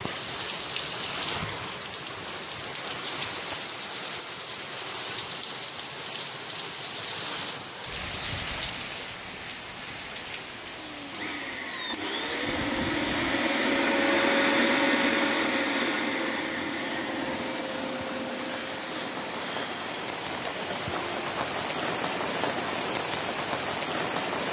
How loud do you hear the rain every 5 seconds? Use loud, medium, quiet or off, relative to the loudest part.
loud, loud, medium, medium, loud.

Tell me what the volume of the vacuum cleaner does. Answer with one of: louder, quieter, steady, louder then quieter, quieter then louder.
louder then quieter.